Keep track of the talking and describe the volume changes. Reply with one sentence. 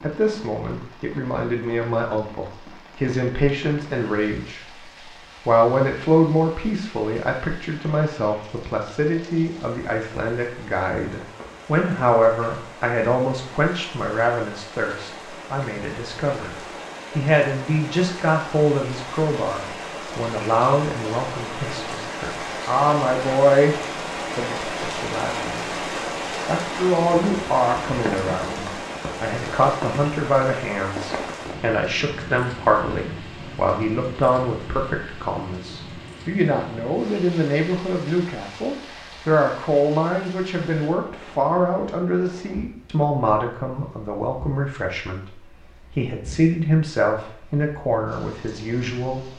The loudness of the talking stays about the same.